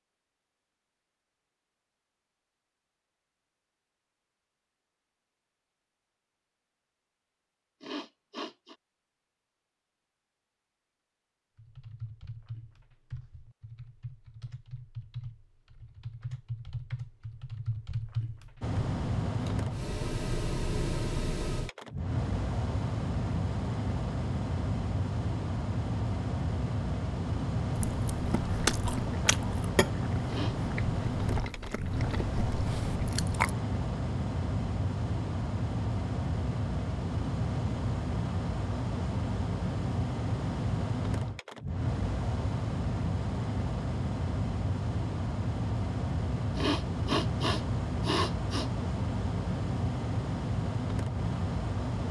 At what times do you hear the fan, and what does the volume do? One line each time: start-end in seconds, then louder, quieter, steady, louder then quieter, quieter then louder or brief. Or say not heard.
18.6-52.0 steady.